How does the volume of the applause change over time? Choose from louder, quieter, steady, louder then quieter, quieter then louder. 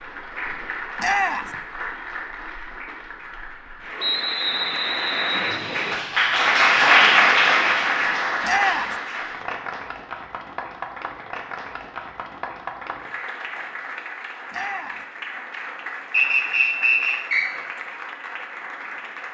louder then quieter.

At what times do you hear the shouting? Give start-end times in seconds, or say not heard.
0.9-1.6, 8.4-8.9, 14.5-15.1.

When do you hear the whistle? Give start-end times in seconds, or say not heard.
4.0-6.0, 16.1-17.4.